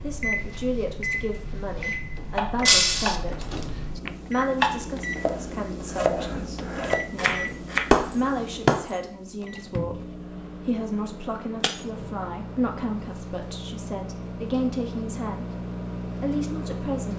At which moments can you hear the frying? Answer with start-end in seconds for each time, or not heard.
not heard.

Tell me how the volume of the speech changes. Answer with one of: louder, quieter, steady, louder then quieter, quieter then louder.
steady.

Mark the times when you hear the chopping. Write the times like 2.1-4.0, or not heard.
2.3-3.4, 4.0-7.8.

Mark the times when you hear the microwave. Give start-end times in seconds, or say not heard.
0.0-17.1.